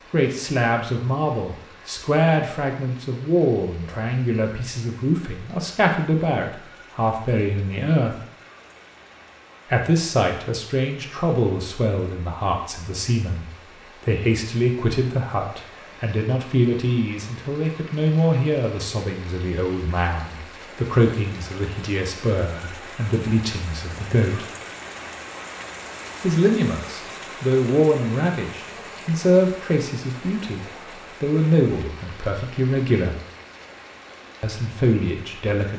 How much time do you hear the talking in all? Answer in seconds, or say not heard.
31 s.